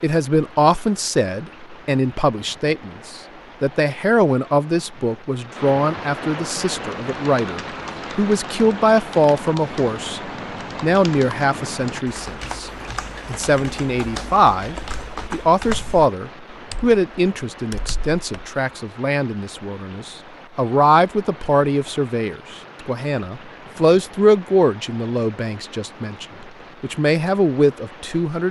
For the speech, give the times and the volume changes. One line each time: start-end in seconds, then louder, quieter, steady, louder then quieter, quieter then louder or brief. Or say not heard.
0.0-28.4 steady.